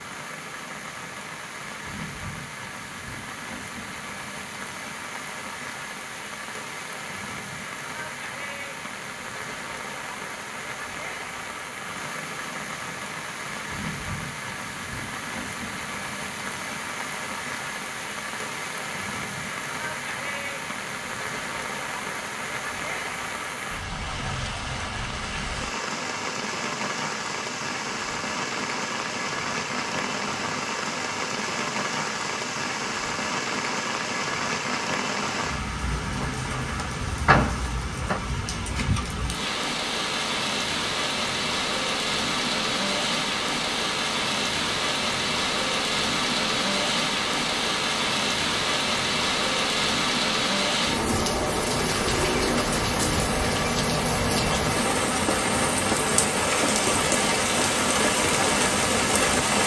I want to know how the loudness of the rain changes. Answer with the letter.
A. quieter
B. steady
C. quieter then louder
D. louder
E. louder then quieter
D.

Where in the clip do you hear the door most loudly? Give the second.
37 s.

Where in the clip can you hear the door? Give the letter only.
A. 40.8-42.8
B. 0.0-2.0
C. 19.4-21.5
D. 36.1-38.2
D.